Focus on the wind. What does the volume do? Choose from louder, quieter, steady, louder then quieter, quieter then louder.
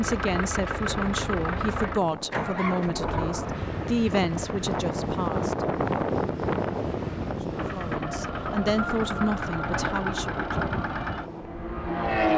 louder then quieter.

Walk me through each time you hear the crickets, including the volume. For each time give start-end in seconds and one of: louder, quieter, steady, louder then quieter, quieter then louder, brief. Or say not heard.
not heard.